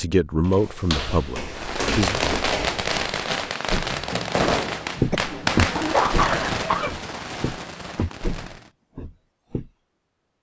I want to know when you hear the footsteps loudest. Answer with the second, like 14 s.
5 s.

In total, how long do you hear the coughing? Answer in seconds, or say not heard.
2 s.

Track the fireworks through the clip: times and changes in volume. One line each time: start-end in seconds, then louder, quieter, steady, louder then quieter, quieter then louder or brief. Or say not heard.
1.5-8.7 quieter.